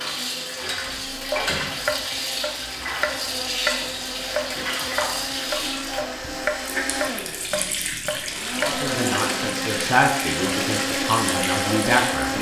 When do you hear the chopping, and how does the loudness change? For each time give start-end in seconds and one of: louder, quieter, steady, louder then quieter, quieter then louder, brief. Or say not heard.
0.8-8.8 steady.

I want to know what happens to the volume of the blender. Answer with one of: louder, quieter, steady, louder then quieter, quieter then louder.
louder.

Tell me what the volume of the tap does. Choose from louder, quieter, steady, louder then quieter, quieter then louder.
steady.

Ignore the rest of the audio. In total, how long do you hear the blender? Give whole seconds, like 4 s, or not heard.
12 s.